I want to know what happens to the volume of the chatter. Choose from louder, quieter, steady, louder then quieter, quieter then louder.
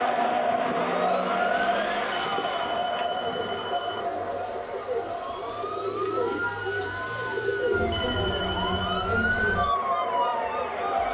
quieter then louder.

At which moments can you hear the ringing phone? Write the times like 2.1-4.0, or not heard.
2.1-4.0, 7.9-9.1.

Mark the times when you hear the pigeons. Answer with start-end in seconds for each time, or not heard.
2.4-9.4.